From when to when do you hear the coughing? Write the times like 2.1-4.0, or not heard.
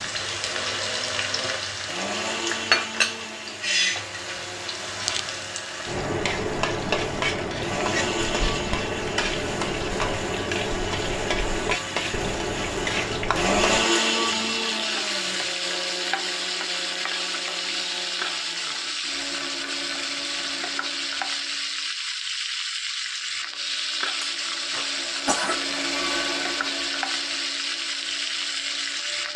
24.1-25.6.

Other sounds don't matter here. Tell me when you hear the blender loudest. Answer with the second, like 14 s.
14 s.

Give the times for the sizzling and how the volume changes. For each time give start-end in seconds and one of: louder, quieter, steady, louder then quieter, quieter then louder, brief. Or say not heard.
0.0-29.3 steady.